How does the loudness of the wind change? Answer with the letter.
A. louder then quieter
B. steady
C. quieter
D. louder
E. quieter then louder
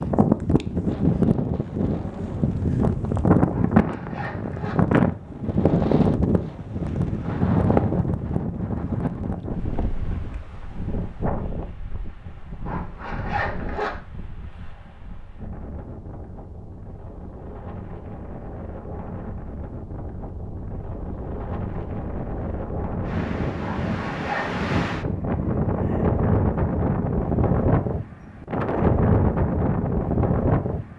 E.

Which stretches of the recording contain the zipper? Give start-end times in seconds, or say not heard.
3.5-4.8, 12.7-13.9, 23.6-24.6.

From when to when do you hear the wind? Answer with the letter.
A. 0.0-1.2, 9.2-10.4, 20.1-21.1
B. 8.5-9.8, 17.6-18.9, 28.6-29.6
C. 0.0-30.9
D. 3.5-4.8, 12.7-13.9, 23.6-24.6
C.